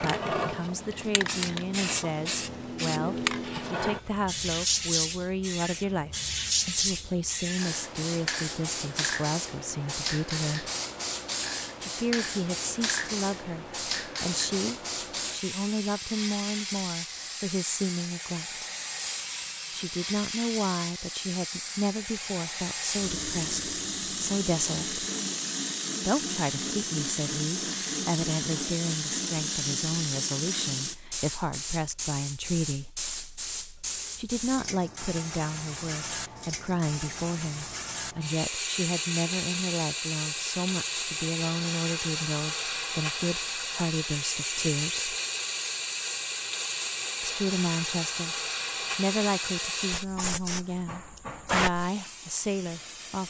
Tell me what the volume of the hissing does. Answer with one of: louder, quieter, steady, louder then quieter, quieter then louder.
steady.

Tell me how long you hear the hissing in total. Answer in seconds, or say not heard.
53 s.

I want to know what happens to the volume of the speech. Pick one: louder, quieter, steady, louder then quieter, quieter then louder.
steady.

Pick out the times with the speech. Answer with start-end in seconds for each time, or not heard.
0.0-10.7, 11.8-18.7, 19.7-25.1, 26.1-32.9, 34.1-45.1, 47.2-53.2.